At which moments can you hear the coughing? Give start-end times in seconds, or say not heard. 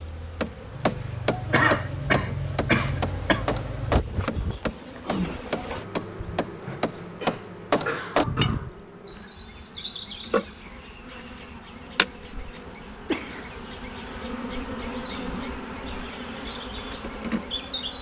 1.5-3.5, 7.2-8.7, 13.1-13.7.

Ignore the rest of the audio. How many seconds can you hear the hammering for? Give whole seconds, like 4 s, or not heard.
8 s.